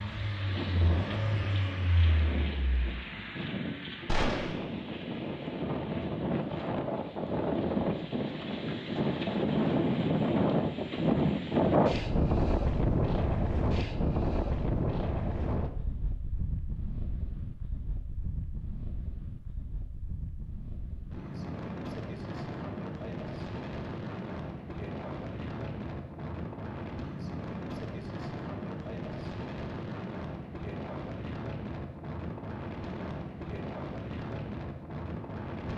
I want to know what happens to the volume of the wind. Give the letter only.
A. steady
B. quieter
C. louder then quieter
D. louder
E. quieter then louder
C.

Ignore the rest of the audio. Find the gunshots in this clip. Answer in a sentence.
You can hear the gunshots from 4.0 to 4.6 s.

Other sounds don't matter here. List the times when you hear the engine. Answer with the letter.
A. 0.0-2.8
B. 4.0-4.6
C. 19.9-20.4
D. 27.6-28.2
A.